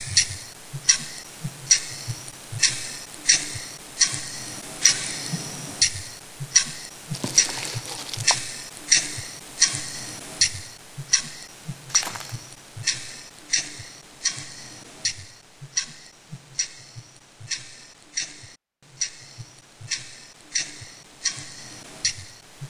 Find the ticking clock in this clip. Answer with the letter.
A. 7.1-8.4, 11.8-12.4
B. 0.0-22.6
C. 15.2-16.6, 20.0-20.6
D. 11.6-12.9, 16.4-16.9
B.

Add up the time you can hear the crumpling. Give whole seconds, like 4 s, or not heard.
2 s.